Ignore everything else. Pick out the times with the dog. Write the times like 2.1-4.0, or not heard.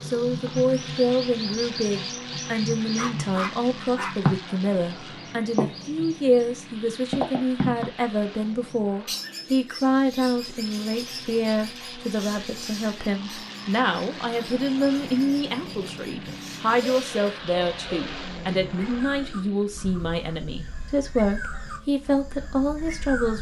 3.0-4.2, 16.2-18.1.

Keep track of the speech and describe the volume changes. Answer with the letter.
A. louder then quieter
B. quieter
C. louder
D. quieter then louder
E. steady
E.